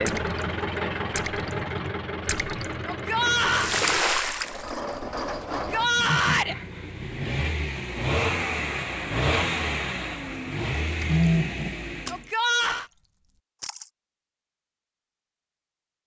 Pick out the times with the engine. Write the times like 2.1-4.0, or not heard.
0.0-12.2.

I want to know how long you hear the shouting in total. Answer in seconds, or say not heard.
3 s.